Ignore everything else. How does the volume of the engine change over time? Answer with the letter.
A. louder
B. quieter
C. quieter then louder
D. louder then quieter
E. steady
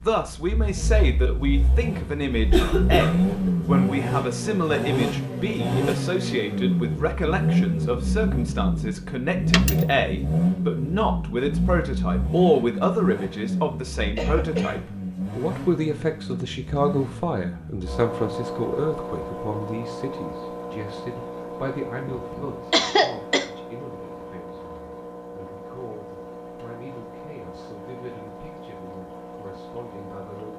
B.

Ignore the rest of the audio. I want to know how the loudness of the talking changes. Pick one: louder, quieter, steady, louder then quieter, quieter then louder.
quieter.